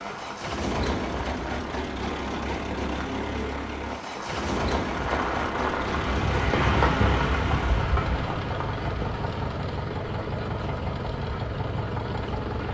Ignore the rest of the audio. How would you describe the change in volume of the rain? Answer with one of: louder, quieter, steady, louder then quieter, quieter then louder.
louder then quieter.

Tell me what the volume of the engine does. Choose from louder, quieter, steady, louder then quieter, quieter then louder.
steady.